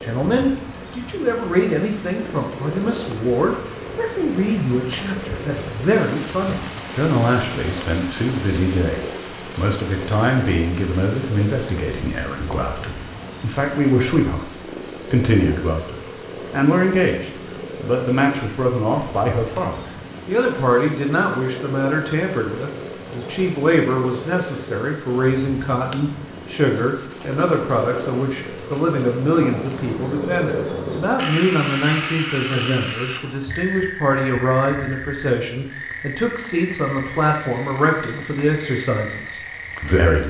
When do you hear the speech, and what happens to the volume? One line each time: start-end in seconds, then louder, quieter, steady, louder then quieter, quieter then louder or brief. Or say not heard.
0.0-40.2 steady.